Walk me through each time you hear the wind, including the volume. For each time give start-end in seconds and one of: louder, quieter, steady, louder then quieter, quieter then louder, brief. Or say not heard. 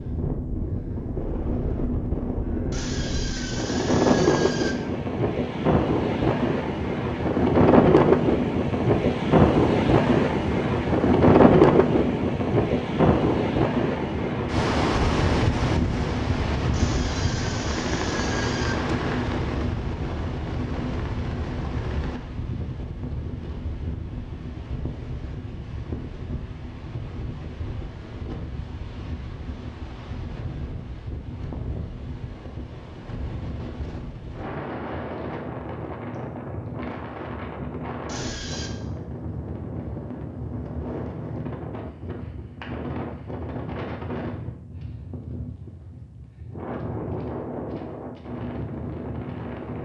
0.0-49.7 quieter.